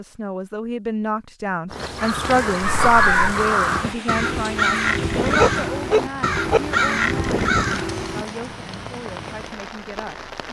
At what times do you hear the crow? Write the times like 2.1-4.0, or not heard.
1.7-8.2.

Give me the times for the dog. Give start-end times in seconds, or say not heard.
2.6-3.4, 5.3-6.6.